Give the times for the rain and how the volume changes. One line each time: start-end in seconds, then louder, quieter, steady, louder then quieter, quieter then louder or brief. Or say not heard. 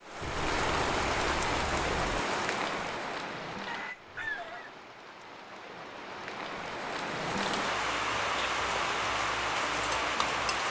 0.0-10.6 quieter then louder.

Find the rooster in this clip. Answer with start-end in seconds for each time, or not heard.
3.6-4.8.